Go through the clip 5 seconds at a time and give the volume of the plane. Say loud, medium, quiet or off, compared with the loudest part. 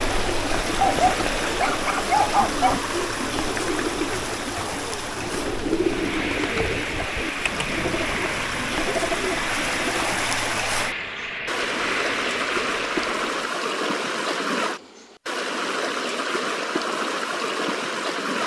off, loud, loud, off.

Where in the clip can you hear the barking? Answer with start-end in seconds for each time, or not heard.
0.8-2.8.